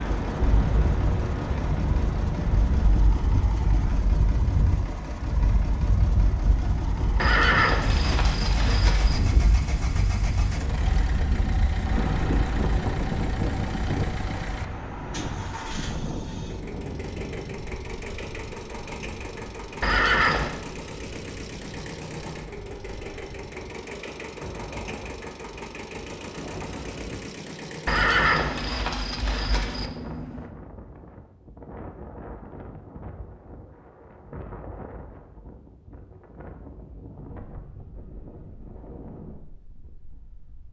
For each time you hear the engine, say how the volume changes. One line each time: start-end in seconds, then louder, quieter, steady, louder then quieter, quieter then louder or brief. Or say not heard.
0.0-30.5 steady.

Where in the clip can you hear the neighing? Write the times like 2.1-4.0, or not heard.
7.2-9.2, 19.8-20.5, 27.9-29.9.